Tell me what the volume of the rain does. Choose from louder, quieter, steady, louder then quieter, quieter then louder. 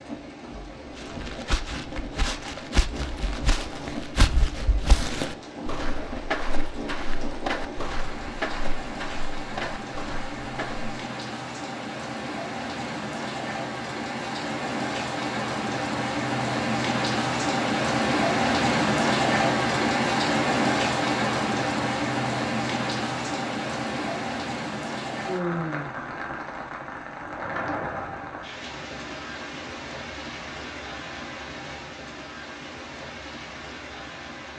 louder then quieter.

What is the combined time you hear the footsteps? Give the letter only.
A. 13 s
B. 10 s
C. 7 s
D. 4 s
B.